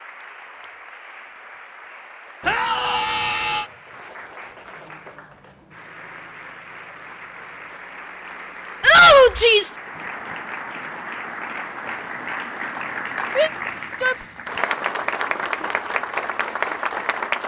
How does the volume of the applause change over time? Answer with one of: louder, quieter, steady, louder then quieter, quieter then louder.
louder.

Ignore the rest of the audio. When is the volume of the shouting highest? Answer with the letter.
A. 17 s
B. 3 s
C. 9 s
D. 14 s
C.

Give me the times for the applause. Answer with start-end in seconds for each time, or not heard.
0.0-17.4.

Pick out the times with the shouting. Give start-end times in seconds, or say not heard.
2.4-3.6, 8.8-9.8, 13.3-14.2.